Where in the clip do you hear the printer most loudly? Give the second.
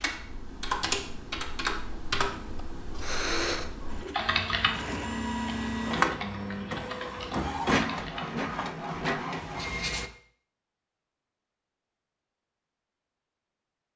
6 s.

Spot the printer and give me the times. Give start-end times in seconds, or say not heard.
3.9-10.1.